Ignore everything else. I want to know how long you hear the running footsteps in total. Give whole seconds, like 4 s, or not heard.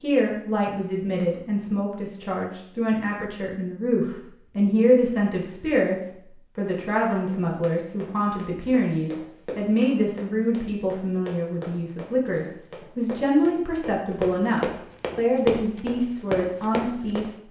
10 s.